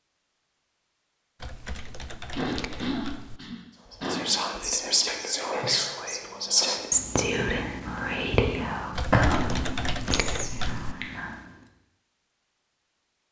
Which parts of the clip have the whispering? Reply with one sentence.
You can hear the whispering from 4.0 to 11.4 s.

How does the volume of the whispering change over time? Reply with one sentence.
The volume of the whispering goes down.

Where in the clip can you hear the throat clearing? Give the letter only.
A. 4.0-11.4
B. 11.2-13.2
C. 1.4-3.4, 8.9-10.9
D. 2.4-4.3
D.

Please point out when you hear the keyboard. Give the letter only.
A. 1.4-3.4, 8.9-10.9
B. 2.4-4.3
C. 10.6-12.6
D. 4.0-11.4
A.